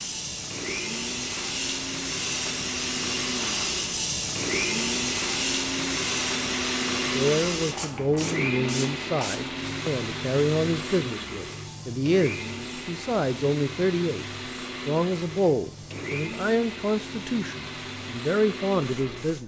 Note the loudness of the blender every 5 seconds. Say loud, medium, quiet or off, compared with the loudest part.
loud, loud, medium, medium.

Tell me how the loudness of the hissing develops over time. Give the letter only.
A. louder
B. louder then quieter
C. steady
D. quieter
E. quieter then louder
D.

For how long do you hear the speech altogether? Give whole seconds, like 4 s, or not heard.
12 s.